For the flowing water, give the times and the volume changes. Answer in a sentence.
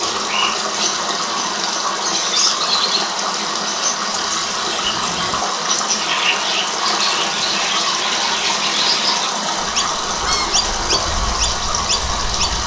You can hear the flowing water from 0.0 to 12.6 s, at a steady volume.